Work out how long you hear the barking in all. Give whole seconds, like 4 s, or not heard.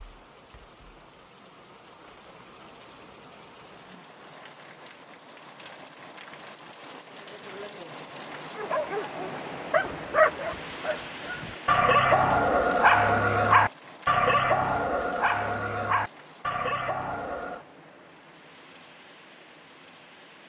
9 s.